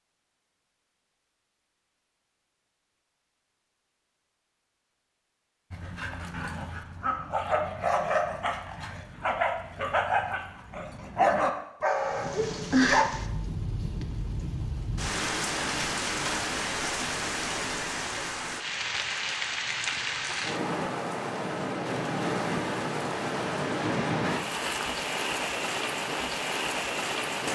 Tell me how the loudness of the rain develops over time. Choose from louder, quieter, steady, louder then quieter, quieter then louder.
steady.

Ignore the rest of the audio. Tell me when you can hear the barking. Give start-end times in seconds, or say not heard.
5.7-13.1.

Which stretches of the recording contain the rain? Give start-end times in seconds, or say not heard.
12.0-27.5.